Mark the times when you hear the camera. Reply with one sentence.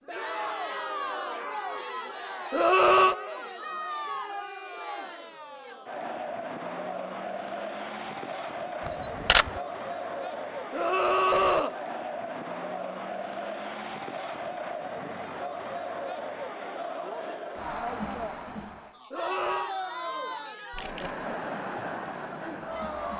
You can hear the camera from 8.8 to 9.6 s and from 20.7 to 21.2 s.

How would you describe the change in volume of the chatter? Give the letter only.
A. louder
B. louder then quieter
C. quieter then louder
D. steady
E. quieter
D.